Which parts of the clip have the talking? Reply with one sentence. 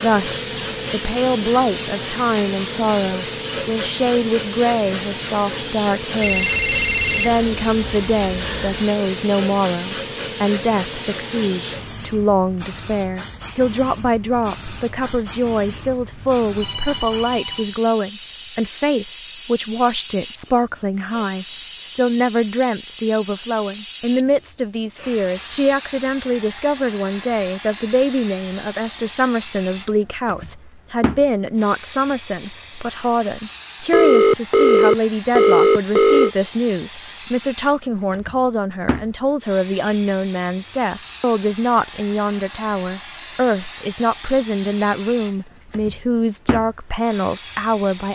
The talking can be heard from 0.0 to 6.5 s and from 7.1 to 48.1 s.